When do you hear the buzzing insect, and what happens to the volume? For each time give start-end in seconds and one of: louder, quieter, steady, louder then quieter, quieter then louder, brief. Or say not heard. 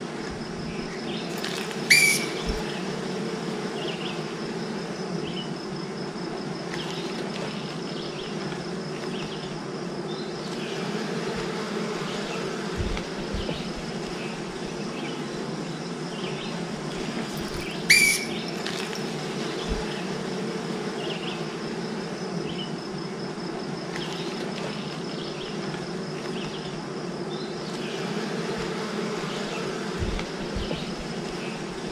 0.0-31.8 steady.